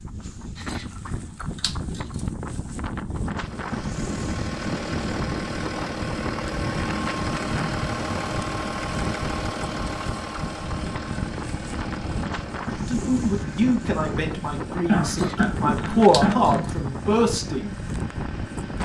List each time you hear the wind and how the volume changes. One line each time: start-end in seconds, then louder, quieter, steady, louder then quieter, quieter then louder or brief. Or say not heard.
0.0-18.8 steady.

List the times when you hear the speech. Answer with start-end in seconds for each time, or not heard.
12.8-17.8.